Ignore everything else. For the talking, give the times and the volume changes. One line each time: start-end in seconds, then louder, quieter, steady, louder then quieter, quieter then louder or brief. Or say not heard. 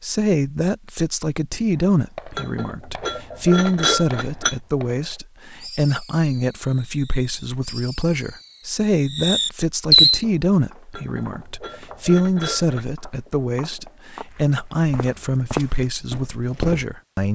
0.0-17.3 steady.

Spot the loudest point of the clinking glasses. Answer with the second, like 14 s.
4 s.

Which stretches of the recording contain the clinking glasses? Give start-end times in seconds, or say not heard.
2.4-4.5, 10.9-12.8.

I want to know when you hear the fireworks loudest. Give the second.
10 s.